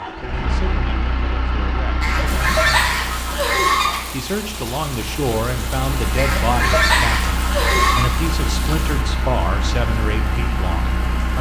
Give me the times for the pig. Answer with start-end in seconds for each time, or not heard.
not heard.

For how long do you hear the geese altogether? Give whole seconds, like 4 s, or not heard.
4 s.